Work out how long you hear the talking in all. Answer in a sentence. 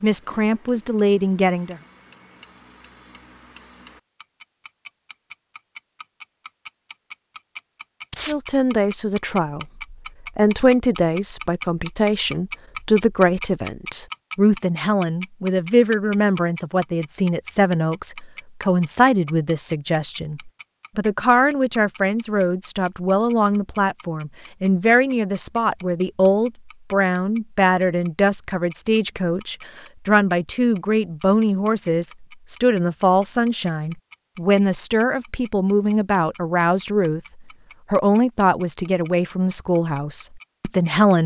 You can hear the talking for 34 seconds altogether.